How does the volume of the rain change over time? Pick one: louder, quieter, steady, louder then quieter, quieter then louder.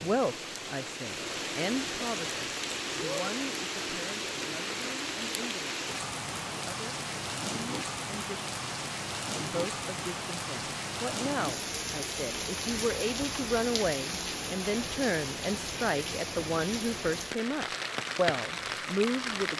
steady.